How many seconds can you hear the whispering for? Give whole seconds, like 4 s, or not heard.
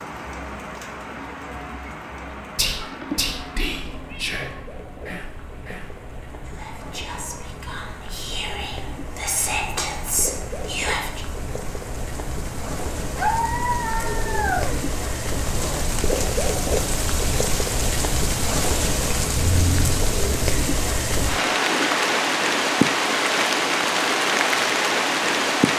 9 s.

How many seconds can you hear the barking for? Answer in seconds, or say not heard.
not heard.